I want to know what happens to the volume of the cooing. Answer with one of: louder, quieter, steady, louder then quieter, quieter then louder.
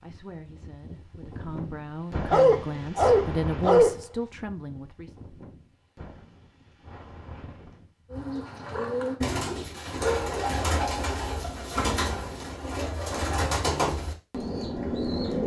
steady.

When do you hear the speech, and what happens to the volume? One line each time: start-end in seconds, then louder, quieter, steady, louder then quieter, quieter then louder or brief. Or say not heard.
0.0-5.2 louder then quieter.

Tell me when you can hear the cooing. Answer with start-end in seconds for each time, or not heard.
8.1-15.4.